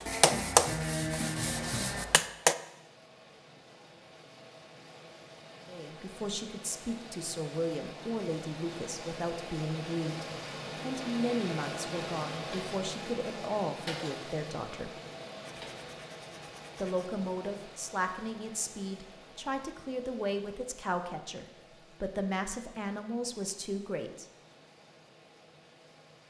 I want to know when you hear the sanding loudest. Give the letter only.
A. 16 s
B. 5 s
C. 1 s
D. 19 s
C.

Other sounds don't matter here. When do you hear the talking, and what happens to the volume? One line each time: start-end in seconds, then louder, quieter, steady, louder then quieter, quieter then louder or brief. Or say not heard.
5.7-14.9 steady
16.8-24.2 steady.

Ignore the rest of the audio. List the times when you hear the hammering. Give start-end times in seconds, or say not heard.
0.0-2.5.